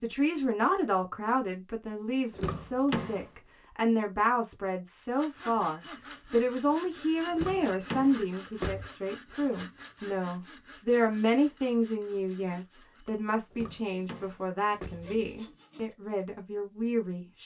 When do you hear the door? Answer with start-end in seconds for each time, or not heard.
2.3-3.2, 7.3-8.9, 13.5-15.2.